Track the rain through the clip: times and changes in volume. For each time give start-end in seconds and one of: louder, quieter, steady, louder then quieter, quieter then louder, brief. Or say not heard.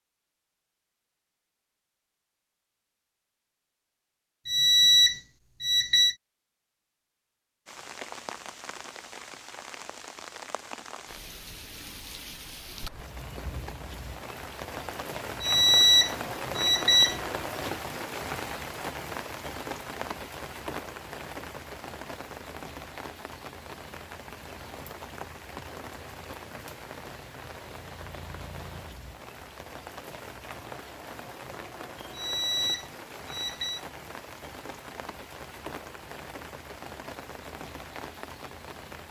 7.7-39.0 louder then quieter.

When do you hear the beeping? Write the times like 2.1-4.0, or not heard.
4.5-6.2, 15.4-17.2, 32.1-33.8.